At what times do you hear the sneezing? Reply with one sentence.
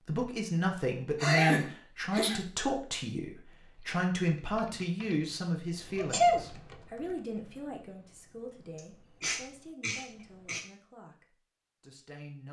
The sneezing can be heard from 1.2 to 2.4 s, from 6.0 to 6.4 s and from 8.8 to 10.7 s.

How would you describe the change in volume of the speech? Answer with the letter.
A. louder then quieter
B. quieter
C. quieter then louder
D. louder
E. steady
B.